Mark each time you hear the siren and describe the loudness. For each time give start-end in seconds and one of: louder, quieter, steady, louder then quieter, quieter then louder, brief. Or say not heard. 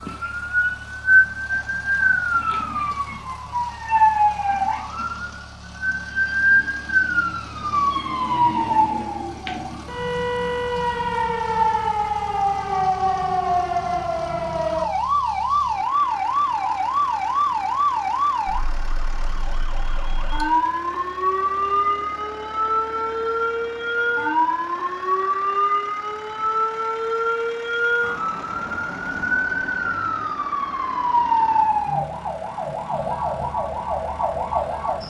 0.0-35.0 steady.